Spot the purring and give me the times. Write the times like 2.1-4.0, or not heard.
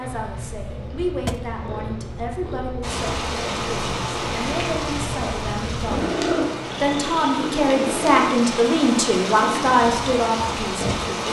0.0-11.2.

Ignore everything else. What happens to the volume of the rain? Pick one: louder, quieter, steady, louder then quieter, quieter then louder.
quieter then louder.